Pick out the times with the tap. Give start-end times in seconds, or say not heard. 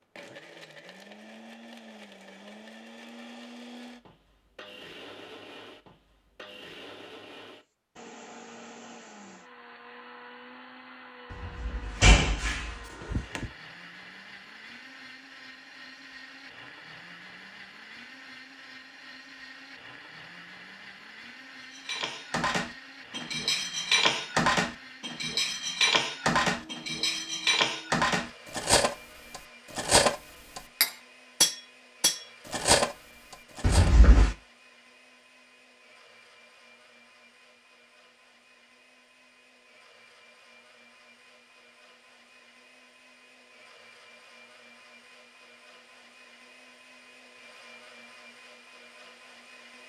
not heard.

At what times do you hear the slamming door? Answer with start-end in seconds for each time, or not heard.
11.3-13.4, 33.6-34.4.